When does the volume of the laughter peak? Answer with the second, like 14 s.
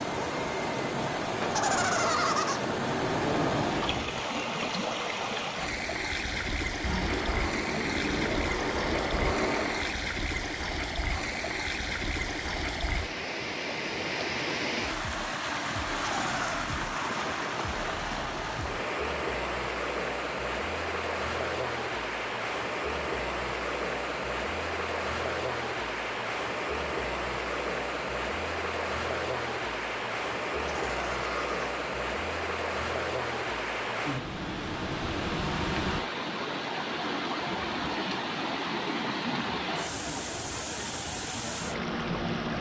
2 s.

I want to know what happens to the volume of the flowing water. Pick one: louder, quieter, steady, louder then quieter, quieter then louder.
steady.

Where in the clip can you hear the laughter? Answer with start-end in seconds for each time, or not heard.
1.4-2.6, 15.9-16.7, 30.7-31.6.